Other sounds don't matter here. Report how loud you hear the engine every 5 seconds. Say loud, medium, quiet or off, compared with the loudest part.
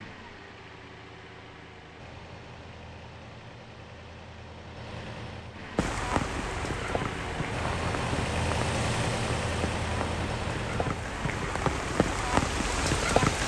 quiet, loud, loud.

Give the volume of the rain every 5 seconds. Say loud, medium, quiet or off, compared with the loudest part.
off, medium, loud.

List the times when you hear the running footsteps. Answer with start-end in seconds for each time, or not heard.
not heard.